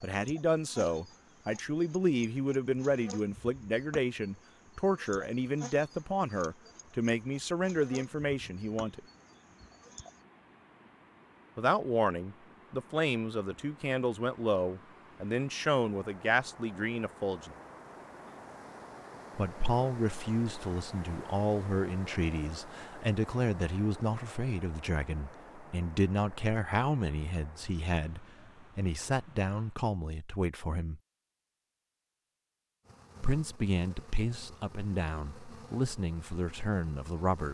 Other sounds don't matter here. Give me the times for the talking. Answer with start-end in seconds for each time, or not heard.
0.0-9.0, 11.6-17.5, 19.4-31.0, 33.2-37.4.